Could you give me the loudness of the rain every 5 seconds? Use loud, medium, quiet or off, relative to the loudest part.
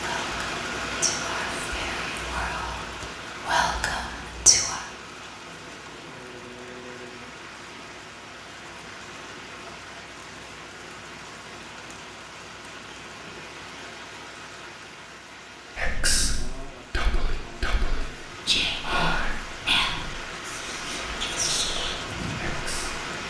loud, medium, medium, medium, loud.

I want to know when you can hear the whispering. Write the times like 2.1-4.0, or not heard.
0.0-4.8, 15.8-23.1.